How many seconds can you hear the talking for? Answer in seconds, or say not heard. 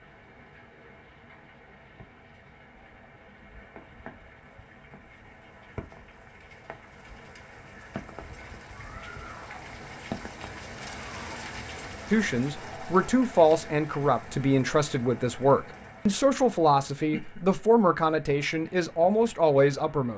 8 s.